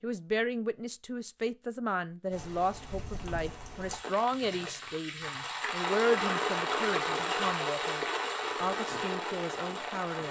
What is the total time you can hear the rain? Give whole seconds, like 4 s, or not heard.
8 s.